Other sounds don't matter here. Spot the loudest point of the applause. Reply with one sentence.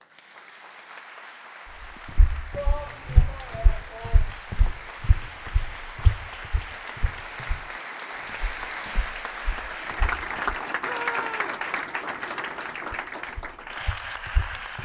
The loudest moment of the applause is at 11 seconds.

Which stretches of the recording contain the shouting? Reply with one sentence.
The shouting can be heard from 2.5 to 4.2 s and from 10.8 to 11.6 s.